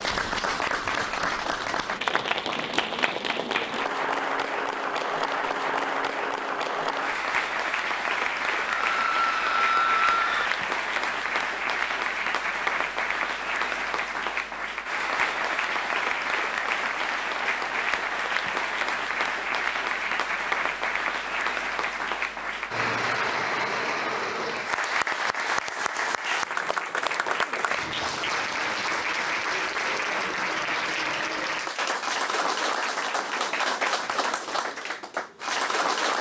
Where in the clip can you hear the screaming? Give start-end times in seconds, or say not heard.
8.8-10.5.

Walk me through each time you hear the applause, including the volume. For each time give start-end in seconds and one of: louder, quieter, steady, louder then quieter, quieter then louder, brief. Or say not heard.
0.0-36.1 steady.